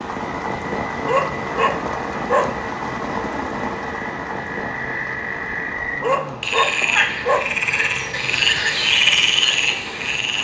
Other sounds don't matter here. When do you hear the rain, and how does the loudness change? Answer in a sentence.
The rain can be heard from 0.0 to 10.3 s, getting quieter.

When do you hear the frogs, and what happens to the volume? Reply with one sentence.
You can hear the frogs from 0.0 to 10.3 s, getting louder.